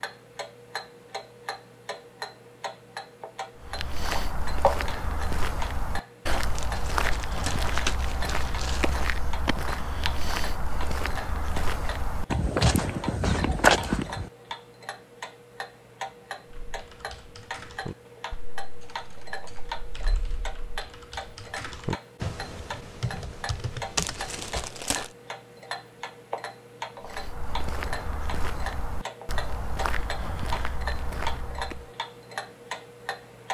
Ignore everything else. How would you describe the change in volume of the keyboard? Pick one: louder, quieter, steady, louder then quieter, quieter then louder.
quieter then louder.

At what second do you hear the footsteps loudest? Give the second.
14 s.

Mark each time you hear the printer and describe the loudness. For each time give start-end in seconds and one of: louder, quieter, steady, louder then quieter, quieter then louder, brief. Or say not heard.
not heard.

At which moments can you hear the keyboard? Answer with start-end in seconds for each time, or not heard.
16.5-24.7.